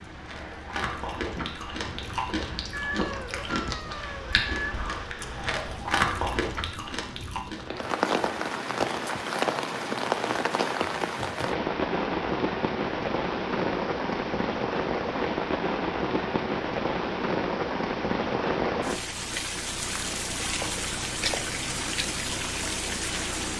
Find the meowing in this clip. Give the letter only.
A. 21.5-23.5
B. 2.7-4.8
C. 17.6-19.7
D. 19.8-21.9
B.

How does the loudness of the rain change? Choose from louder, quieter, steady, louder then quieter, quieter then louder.
louder.